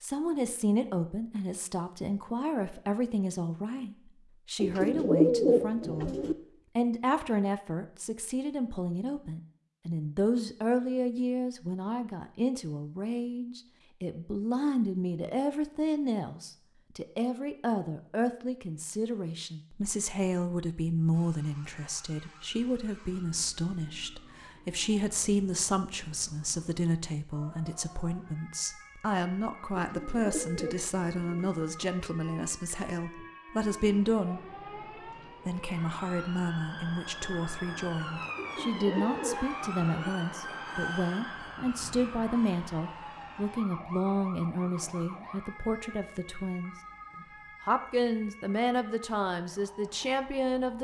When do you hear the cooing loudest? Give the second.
5 s.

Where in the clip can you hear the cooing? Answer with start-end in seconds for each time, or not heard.
4.6-6.3, 29.7-31.5, 38.4-40.1.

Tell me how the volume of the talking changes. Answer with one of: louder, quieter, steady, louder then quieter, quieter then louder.
steady.